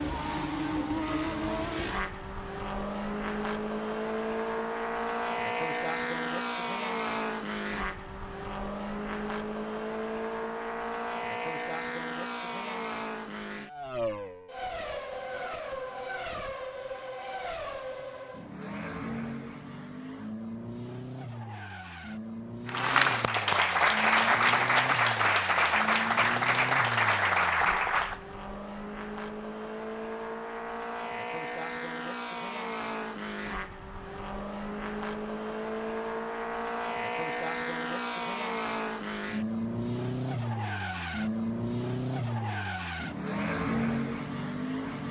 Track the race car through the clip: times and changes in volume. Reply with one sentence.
You can hear the race car from 0.0 to 45.0 s, getting quieter then louder.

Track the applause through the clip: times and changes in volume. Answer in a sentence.
The applause can be heard from 22.6 to 28.2 s, at a steady volume.